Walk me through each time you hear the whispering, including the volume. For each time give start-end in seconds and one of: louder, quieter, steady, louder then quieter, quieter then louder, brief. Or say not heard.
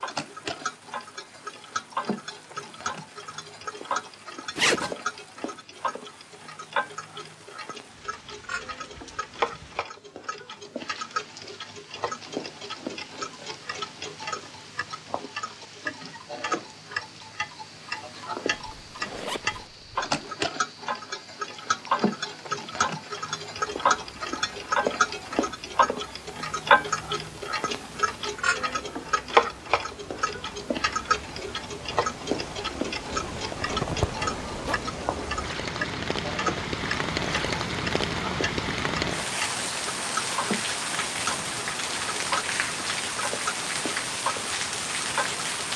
not heard.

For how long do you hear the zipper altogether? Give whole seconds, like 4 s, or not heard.
4 s.